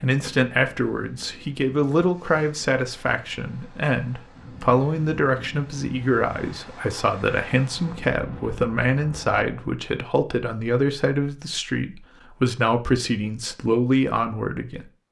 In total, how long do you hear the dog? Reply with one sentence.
The dog can't be heard in this clip.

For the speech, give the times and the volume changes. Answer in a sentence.
You can hear the speech from 0.0 to 14.8 s, at a steady volume.